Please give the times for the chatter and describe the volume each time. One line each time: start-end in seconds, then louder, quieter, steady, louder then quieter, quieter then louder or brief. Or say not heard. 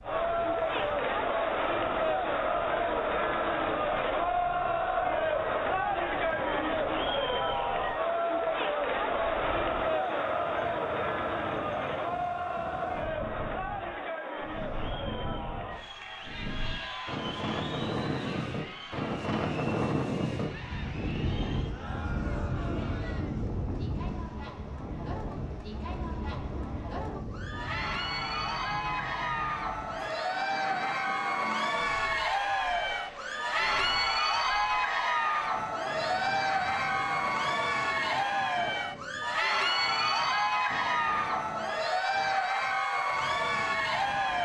0.0-44.4 quieter then louder.